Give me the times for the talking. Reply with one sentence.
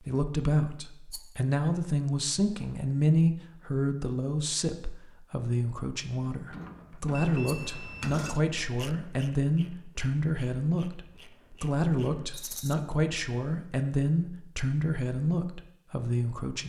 The talking can be heard from 0.0 to 16.6 s.